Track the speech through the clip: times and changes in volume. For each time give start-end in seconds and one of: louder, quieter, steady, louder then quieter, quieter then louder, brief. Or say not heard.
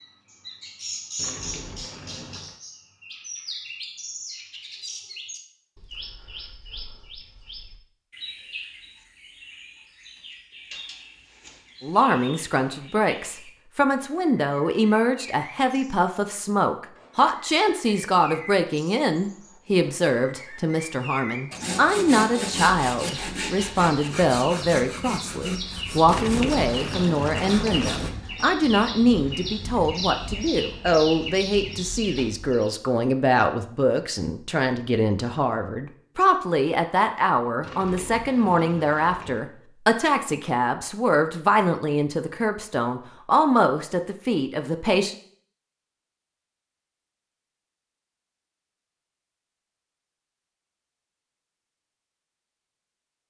11.8-45.1 steady.